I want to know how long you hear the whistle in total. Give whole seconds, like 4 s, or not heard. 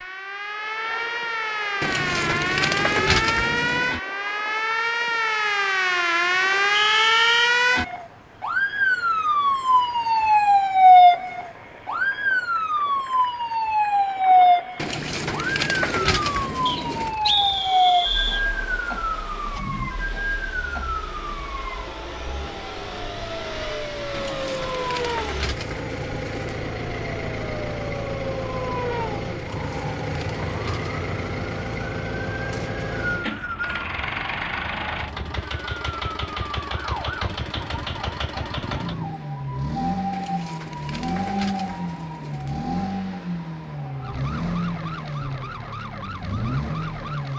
4 s.